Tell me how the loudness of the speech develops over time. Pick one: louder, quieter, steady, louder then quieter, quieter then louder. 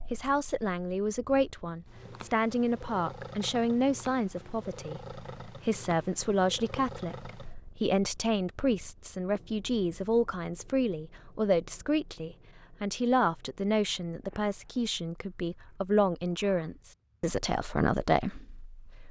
steady.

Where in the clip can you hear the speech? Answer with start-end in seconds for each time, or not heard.
0.1-19.0.